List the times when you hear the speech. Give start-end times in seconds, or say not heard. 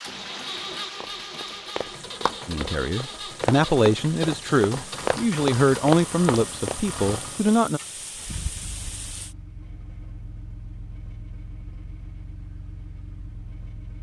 2.5-7.8.